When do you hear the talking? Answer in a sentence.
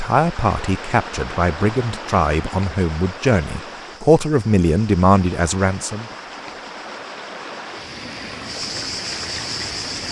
The talking can be heard from 0.0 to 6.0 s.